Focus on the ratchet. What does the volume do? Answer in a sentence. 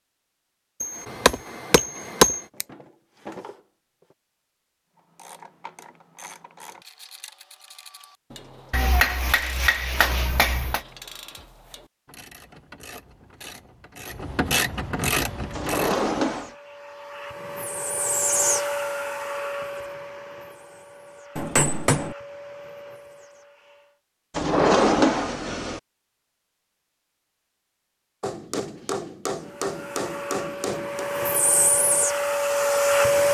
The loudness of the ratchet goes up.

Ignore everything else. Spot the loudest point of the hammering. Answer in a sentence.
The loudest moment of the hammering is at 2 seconds.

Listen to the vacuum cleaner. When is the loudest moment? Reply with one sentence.
The loudest moment of the vacuum cleaner is at 33 seconds.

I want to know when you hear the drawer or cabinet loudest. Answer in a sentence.
The volume of the drawer or cabinet peaks at 25 seconds.